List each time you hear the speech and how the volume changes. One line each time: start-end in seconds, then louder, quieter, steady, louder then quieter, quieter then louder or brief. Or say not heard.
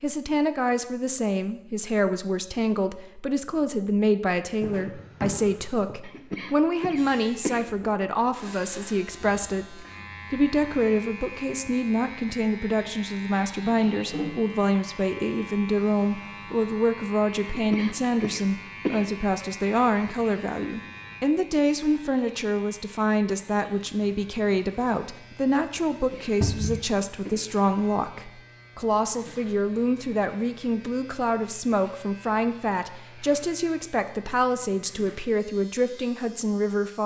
0.0-37.0 steady.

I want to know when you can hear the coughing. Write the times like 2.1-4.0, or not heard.
6.0-7.7, 17.5-19.1, 25.9-27.4.